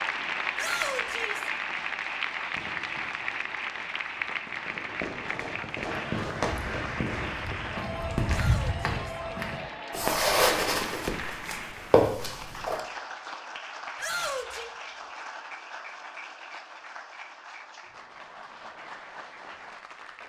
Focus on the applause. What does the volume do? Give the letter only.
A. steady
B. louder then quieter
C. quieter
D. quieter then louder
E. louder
C.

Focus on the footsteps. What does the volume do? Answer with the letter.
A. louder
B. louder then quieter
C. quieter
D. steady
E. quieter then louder
A.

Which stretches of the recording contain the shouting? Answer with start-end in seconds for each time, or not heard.
0.6-1.5, 8.2-9.2, 13.9-14.7.